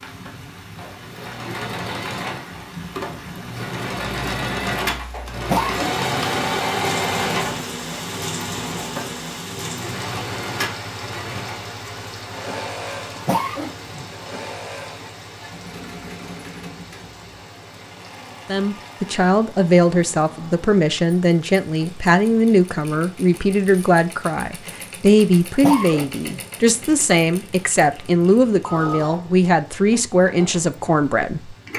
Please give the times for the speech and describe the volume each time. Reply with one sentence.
The speech can be heard from 18.4 to 31.6 s, at a steady volume.